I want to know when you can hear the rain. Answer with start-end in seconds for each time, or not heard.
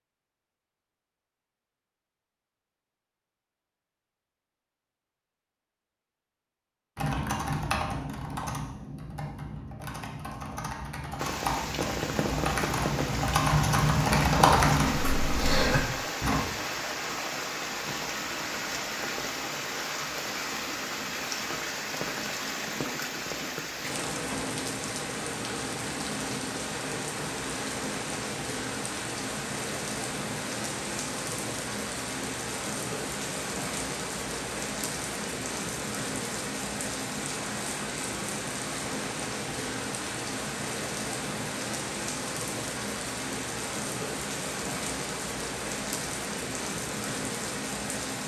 11.2-48.2.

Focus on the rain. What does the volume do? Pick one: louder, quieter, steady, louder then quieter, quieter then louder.
steady.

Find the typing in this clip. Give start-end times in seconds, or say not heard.
7.0-16.4.